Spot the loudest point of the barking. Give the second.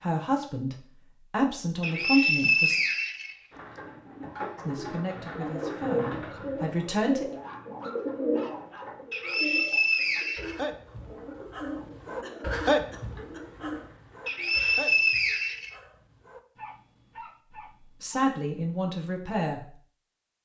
13 s.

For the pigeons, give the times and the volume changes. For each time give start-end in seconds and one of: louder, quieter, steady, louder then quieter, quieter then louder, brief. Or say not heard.
3.5-15.1 quieter.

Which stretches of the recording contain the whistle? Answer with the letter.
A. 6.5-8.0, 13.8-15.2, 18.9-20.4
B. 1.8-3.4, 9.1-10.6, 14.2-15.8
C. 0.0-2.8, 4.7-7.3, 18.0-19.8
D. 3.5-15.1
B.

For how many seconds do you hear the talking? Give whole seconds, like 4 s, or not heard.
7 s.